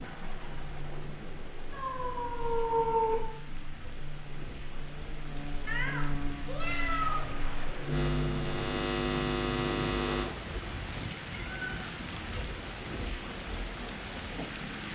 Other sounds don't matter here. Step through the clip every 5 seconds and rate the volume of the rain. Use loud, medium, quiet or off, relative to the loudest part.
medium, loud, loud.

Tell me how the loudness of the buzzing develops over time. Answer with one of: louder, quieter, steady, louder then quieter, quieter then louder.
louder.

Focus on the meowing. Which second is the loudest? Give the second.
3 s.